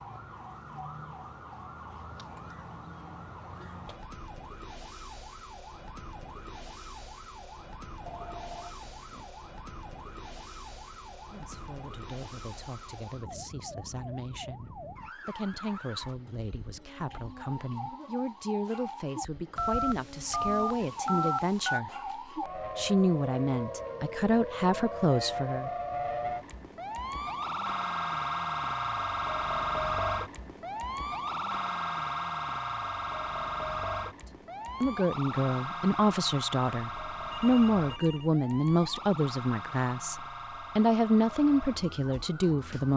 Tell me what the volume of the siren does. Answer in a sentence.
The loudness of the siren goes up, then down.